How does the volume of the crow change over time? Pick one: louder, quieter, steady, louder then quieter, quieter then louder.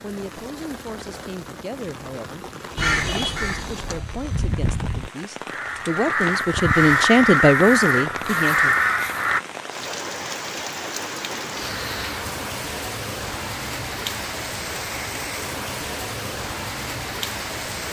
louder.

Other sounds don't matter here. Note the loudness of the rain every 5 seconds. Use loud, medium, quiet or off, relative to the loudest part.
medium, medium, loud, loud.